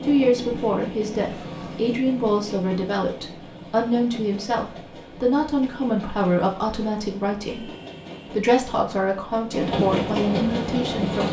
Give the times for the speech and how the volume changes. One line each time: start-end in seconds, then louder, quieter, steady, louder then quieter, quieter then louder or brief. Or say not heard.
0.0-7.7 steady
8.3-11.2 brief.